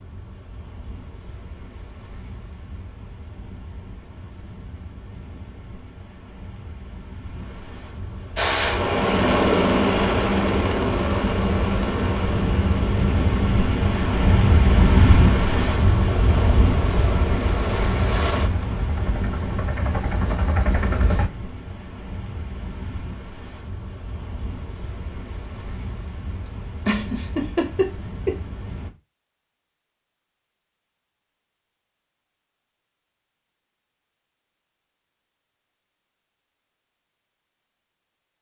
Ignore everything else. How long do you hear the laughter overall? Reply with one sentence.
The laughter can be heard for 2 seconds in total.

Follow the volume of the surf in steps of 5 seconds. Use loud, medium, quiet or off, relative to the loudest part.
quiet, quiet, loud, loud, quiet, quiet, off, off.